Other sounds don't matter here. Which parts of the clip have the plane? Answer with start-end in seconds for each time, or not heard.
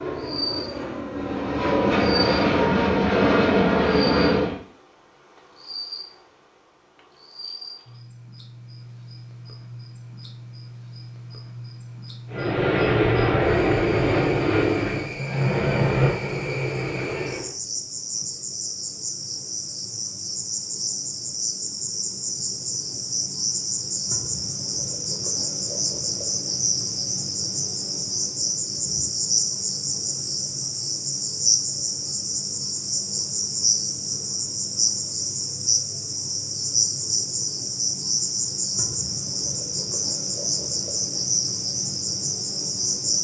0.0-4.6, 12.2-17.6.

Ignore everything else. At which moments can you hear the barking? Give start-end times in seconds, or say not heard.
not heard.